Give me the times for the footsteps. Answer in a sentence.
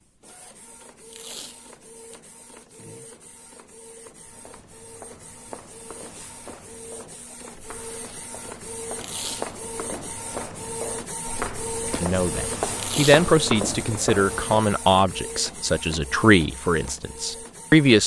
You can hear the footsteps from 4.2 to 14.7 s.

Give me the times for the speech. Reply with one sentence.
The speech can be heard from 11.9 to 18.0 s.